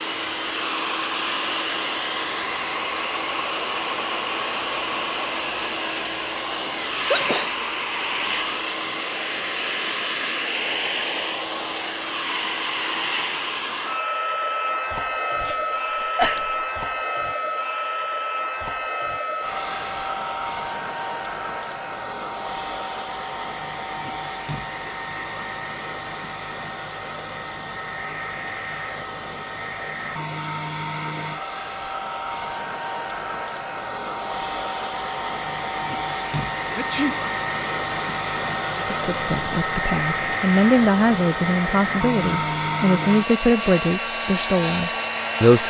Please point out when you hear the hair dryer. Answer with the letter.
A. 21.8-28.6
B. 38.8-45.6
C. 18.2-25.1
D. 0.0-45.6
D.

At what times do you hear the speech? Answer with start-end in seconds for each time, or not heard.
38.8-45.6.